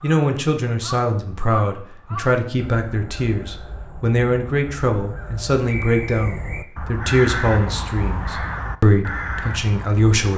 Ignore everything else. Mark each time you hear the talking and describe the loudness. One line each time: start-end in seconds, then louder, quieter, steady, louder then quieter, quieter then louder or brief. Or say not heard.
0.0-10.3 steady.